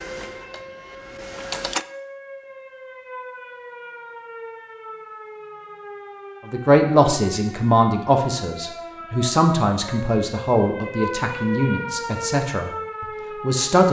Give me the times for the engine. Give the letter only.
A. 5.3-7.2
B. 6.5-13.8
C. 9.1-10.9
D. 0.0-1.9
D.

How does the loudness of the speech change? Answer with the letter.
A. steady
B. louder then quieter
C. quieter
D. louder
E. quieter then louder
C.